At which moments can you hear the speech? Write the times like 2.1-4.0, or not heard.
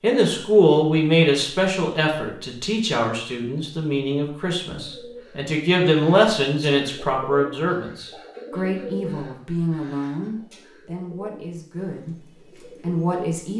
0.0-13.5.